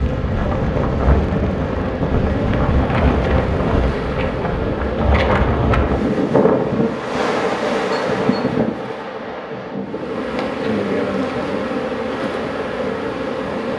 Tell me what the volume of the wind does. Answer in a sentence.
The loudness of the wind goes down.